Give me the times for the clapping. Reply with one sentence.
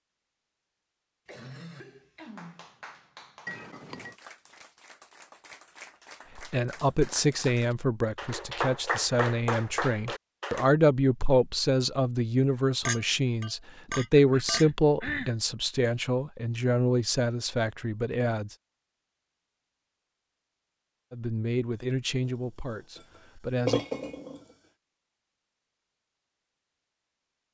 You can hear the clapping from 2.2 to 10.7 s.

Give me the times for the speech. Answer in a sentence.
You can hear the speech from 6.3 to 18.6 s and from 21.1 to 23.9 s.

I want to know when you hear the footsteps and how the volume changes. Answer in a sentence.
The footsteps can't be heard in this clip.